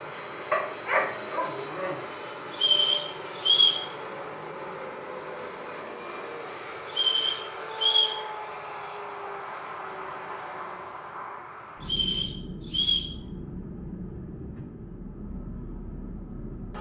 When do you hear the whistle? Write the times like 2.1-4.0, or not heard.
2.5-3.9, 6.9-8.2, 11.8-13.1.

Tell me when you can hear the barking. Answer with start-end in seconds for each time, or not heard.
0.5-2.0.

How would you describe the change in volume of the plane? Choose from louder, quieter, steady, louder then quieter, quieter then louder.
steady.